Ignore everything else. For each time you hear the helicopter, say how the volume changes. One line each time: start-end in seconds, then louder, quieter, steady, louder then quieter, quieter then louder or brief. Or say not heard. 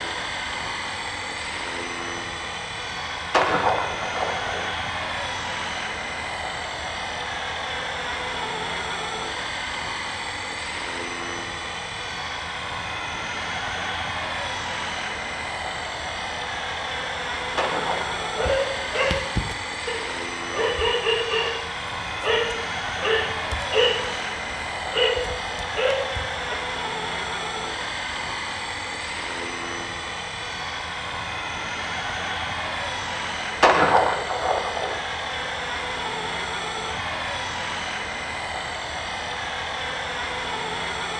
0.0-41.1 steady.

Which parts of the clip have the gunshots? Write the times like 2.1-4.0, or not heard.
3.3-4.7, 17.6-18.9, 33.6-35.0.